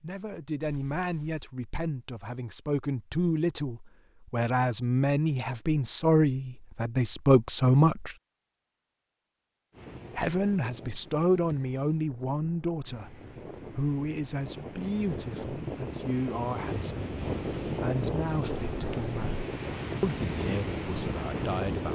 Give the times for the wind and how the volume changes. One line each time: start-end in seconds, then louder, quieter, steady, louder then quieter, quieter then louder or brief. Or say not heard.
9.7-21.9 louder.